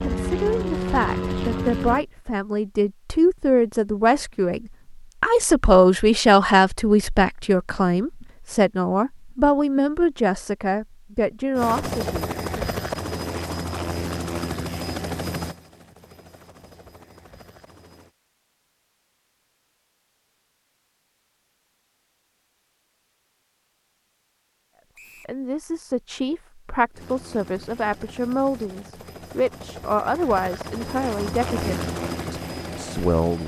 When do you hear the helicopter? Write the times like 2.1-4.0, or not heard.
0.0-2.0, 11.6-18.1, 26.9-33.4.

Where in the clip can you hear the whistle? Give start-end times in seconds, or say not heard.
24.9-25.4.